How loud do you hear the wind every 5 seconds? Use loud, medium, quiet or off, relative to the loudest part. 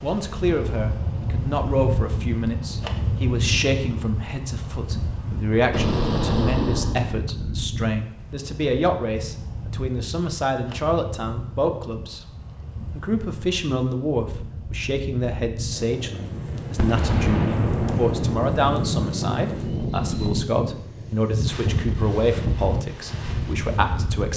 loud, medium, medium, loud, loud.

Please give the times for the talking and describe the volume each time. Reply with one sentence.
You can hear the talking from 0.0 to 12.3 s, at a steady volume; and from 12.9 to 24.3 s, at a steady volume.